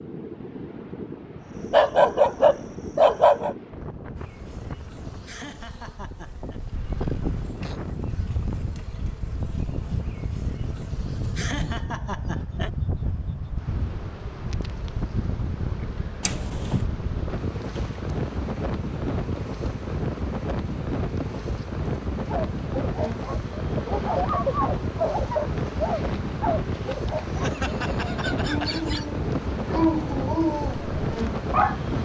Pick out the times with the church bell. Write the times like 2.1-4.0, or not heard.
not heard.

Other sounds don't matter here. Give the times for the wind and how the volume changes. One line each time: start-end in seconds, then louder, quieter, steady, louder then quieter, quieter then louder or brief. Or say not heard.
0.0-31.9 louder.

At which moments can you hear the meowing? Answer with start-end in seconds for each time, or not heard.
16.2-16.9.